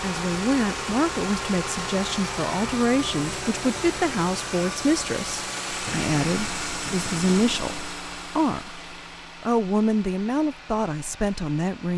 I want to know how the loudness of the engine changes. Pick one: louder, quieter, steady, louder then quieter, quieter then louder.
quieter.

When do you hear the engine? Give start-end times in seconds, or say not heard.
0.0-11.9.